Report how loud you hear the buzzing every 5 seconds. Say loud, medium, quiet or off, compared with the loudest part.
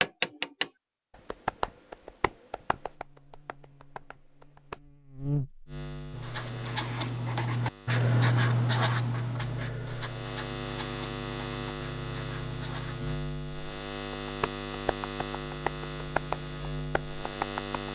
quiet, loud, loud, loud.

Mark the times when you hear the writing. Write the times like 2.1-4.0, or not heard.
6.1-13.2.